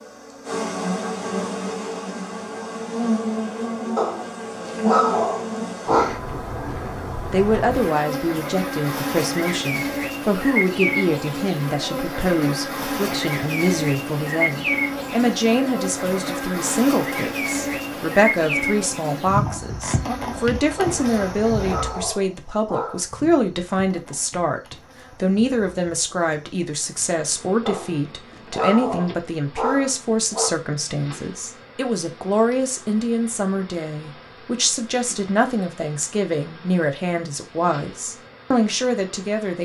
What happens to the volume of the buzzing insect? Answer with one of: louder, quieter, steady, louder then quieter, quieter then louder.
quieter.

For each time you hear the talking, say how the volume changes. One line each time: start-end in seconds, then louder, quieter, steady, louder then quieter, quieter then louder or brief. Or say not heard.
7.3-39.6 steady.